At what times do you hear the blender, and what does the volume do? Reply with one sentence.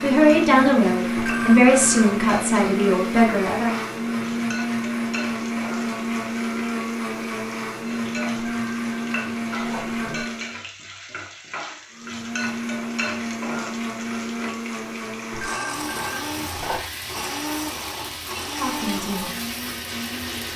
You can hear the blender from 0.0 to 10.6 s, at a steady volume; and from 11.9 to 20.5 s, at a steady volume.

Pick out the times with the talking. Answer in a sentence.
The talking can be heard from 0.0 to 3.8 s and from 18.4 to 19.3 s.